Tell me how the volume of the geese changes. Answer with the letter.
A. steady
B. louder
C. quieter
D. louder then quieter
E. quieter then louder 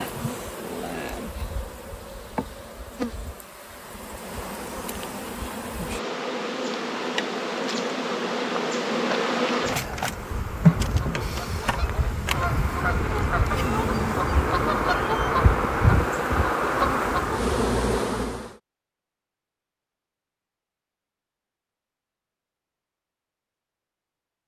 B.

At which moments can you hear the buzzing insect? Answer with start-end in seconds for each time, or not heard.
0.0-18.6.